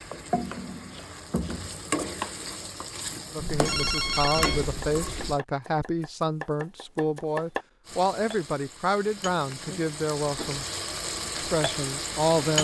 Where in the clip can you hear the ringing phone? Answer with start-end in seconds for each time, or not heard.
3.4-5.3.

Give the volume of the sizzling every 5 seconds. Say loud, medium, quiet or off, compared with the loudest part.
loud, medium, loud.